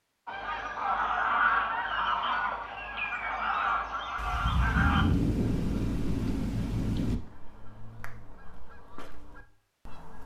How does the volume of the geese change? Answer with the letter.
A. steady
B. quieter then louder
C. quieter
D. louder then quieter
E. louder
C.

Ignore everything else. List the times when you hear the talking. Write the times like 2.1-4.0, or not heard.
not heard.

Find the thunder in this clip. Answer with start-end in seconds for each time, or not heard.
4.2-7.2.